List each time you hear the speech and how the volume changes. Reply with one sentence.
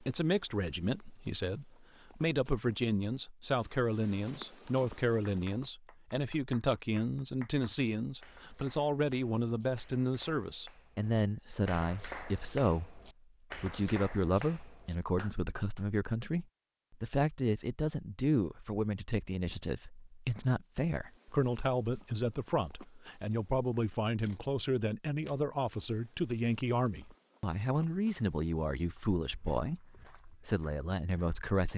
You can hear the speech from 0.0 to 31.7 s, at a steady volume.